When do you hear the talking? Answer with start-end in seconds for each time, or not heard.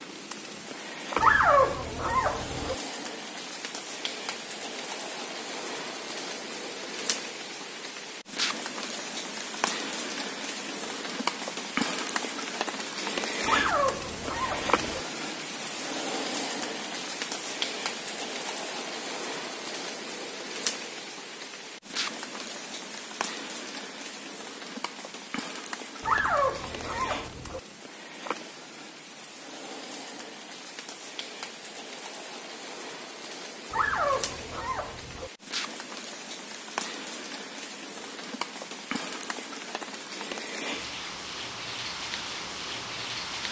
not heard.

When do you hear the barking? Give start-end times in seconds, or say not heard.
1.1-2.8, 13.4-15.0, 26.0-27.6, 33.7-35.3.